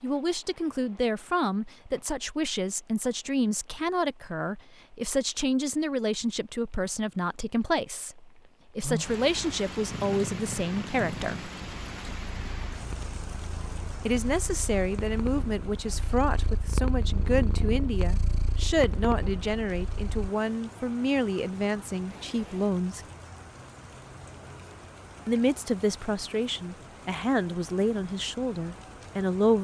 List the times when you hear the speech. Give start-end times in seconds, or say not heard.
0.0-11.5, 14.0-23.1, 25.2-29.6.